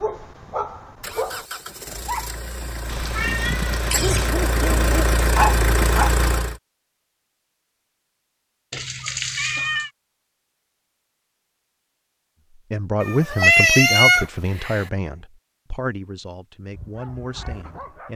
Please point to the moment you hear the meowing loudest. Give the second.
14 s.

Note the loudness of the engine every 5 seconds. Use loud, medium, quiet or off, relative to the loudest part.
medium, loud, off, off.